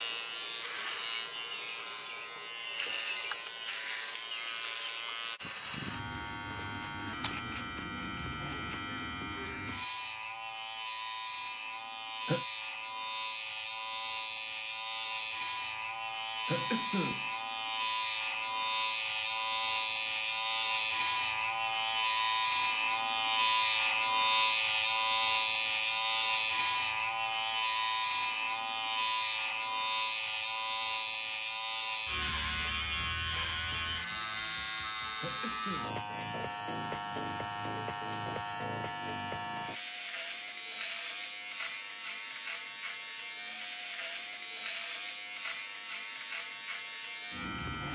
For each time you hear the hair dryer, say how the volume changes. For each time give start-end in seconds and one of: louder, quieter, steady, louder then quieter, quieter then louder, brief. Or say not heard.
not heard.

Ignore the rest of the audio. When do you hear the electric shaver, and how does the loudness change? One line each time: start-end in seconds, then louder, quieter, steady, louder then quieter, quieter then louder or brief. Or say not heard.
0.0-47.9 louder then quieter.